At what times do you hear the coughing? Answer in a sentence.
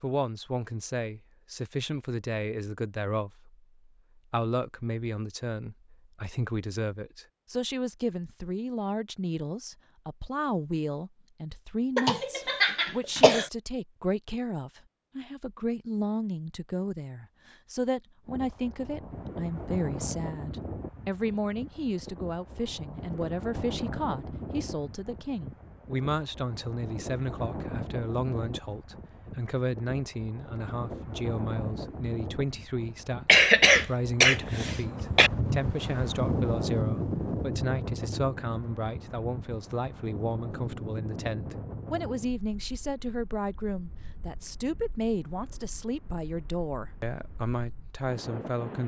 The coughing can be heard from 11.9 to 13.4 s and from 33.2 to 35.3 s.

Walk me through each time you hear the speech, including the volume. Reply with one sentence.
You can hear the speech from 0.0 to 48.8 s, at a steady volume.